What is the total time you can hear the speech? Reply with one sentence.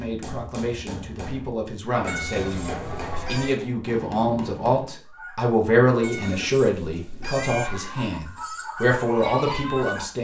The speech can be heard for 10 seconds in total.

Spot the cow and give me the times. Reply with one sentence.
You can hear the cow from 1.9 to 3.6 s.